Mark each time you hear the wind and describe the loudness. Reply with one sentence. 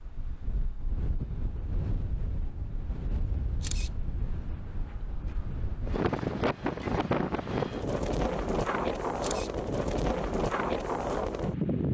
The wind can be heard from 0.0 to 11.8 s, getting louder.